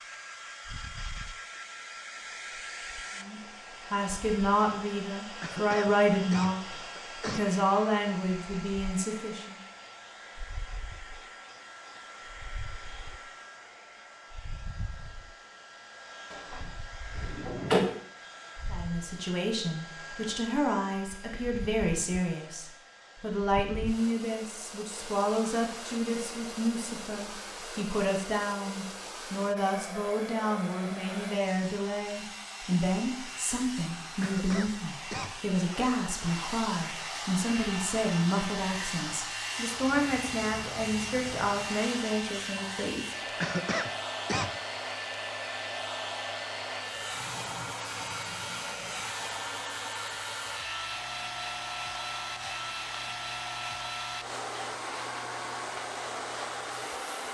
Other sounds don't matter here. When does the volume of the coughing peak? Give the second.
44 s.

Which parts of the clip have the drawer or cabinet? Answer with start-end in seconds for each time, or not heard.
16.3-17.9.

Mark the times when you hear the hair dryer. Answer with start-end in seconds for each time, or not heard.
0.0-57.2.